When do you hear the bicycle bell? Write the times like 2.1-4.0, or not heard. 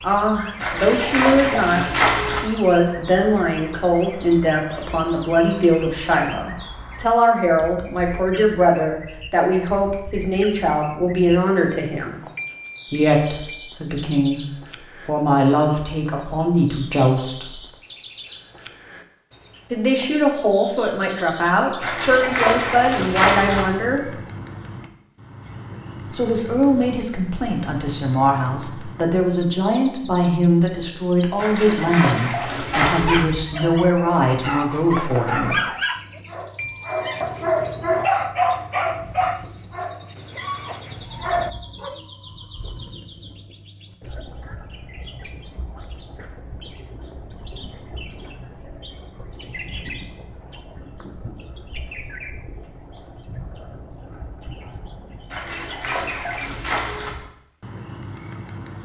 12.3-13.7, 36.5-37.2.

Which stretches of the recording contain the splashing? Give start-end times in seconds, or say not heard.
0.6-2.4, 21.8-23.6, 31.4-33.2, 55.3-57.1.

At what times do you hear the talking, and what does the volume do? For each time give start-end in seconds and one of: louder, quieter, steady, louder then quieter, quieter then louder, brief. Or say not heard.
0.0-12.2 steady
12.9-14.4 brief
15.1-17.6 brief
19.7-24.1 steady
26.1-35.5 steady.